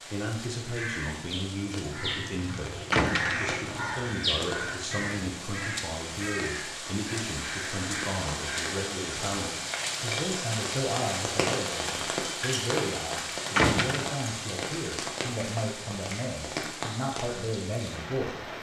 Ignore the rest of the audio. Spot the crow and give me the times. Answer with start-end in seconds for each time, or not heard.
0.6-8.8.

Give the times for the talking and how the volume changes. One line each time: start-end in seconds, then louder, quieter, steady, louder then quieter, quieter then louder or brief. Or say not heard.
0.1-18.4 steady.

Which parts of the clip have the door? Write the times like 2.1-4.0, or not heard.
2.9-3.5, 13.6-14.2.